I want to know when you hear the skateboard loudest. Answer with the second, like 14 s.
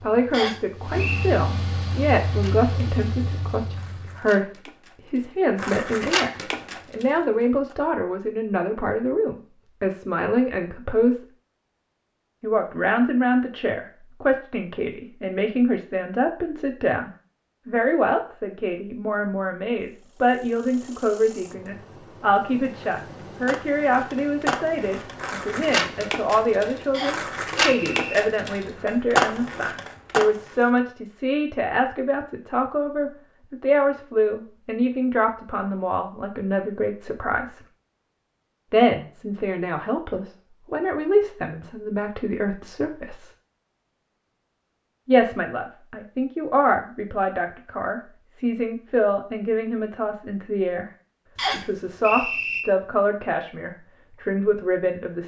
30 s.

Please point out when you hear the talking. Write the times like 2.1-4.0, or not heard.
0.0-11.2, 12.4-37.6, 38.7-43.3, 45.0-50.9, 51.5-55.2.